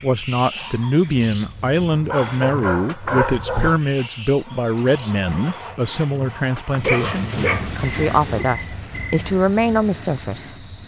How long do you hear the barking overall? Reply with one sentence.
You can hear the barking for 4 seconds altogether.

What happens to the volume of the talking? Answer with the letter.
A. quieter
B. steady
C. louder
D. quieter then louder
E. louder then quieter
B.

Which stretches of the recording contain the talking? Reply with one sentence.
You can hear the talking from 0.0 to 10.7 s.